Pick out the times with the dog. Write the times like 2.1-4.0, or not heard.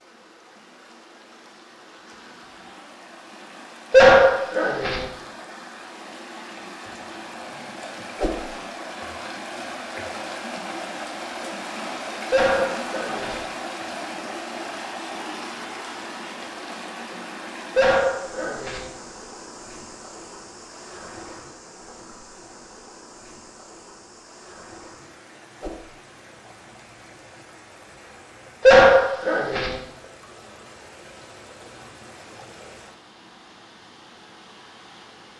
3.9-5.0, 12.3-13.4, 17.8-18.9, 28.6-29.8.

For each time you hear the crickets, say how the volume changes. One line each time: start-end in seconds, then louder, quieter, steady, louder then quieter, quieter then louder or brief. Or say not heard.
not heard.